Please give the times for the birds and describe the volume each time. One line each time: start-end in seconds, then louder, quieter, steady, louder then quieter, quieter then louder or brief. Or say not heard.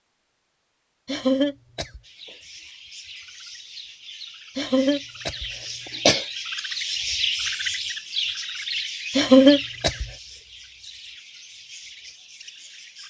2.0-13.0 louder then quieter.